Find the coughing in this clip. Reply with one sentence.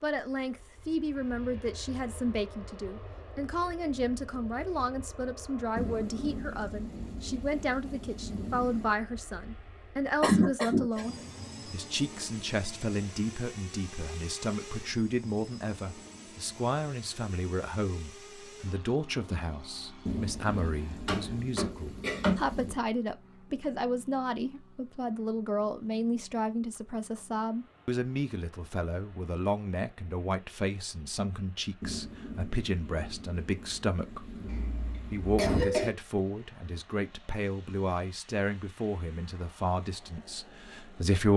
You can hear the coughing from 10.2 to 11.2 s, from 21.1 to 22.4 s and from 34.5 to 35.9 s.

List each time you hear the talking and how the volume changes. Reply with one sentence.
You can hear the talking from 0.0 to 41.3 s, at a steady volume.